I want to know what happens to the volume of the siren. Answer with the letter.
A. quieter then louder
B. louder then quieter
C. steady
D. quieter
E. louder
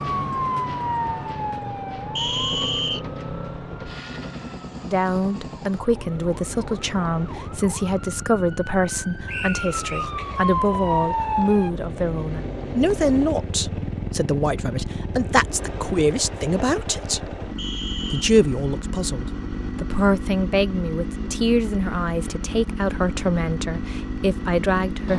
A.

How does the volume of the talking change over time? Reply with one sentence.
The loudness of the talking stays about the same.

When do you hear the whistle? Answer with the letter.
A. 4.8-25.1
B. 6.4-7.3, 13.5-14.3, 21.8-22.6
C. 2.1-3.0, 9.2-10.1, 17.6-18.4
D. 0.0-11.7
C.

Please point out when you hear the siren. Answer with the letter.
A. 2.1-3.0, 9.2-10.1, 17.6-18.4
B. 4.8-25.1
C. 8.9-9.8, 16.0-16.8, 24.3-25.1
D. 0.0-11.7
D.